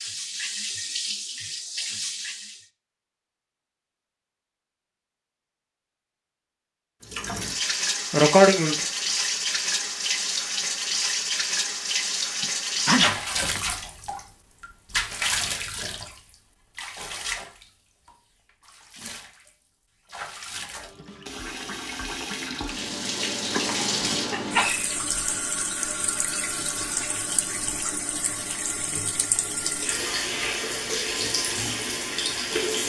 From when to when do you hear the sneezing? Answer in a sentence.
You can hear the sneezing from 8.1 to 8.8 s, from 12.4 to 13.6 s and from 23.5 to 24.9 s.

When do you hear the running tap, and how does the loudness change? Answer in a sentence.
The running tap can be heard briefly from 0.0 to 2.6 s; and from 7.0 to 32.8 s, getting quieter then louder.